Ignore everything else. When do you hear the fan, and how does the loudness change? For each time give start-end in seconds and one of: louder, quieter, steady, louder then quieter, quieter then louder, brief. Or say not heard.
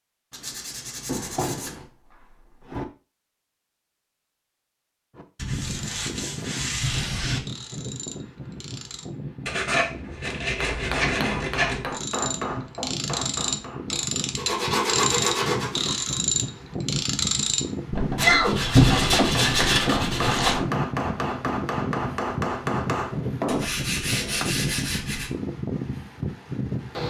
5.5-27.0 louder.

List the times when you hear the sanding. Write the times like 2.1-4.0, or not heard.
0.3-1.9, 5.3-7.4, 9.4-11.8, 14.3-16.1, 18.1-20.6, 23.4-25.3.